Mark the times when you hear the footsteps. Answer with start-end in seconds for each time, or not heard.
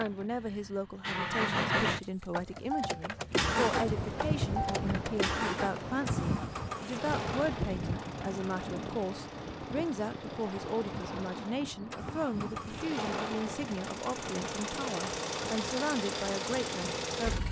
not heard.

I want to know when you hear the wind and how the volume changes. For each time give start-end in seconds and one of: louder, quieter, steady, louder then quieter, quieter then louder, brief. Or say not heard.
3.3-17.4 quieter.